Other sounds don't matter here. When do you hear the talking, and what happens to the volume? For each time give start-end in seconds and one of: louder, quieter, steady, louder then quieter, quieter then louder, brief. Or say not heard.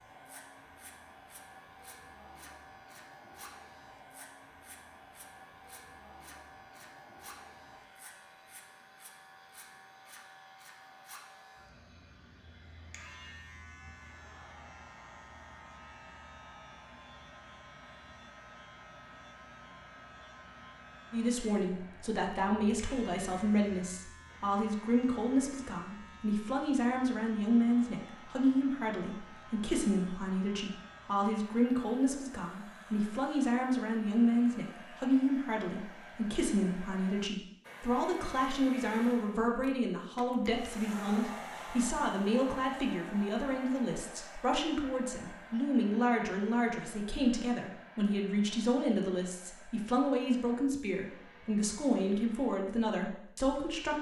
21.1-53.9 steady.